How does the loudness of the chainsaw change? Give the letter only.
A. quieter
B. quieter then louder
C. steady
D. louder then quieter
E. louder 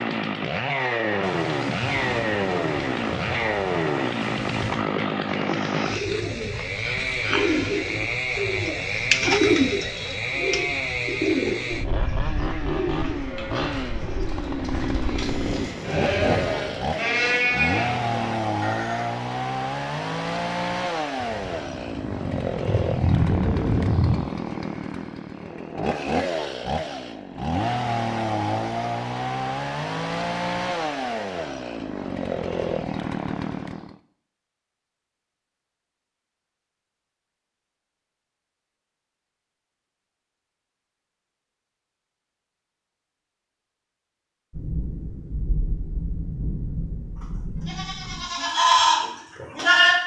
C.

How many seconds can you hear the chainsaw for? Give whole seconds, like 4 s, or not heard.
34 s.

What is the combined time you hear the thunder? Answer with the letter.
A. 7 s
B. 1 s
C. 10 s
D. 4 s
C.